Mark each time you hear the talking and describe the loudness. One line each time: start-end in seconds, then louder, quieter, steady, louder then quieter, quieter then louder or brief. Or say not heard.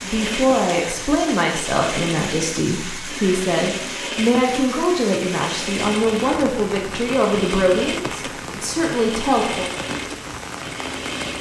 0.0-9.7 steady.